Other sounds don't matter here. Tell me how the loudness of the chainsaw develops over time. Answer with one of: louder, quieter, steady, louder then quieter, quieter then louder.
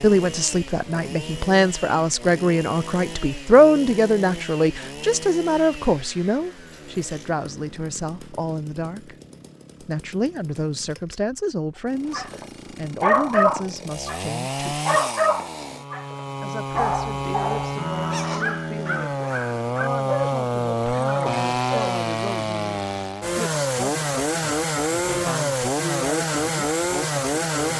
quieter then louder.